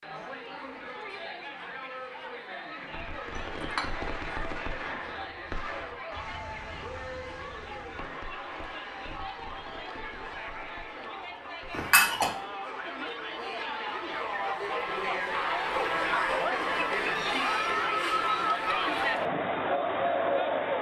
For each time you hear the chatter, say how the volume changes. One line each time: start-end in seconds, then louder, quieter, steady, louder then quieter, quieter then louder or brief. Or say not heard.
0.0-20.7 louder.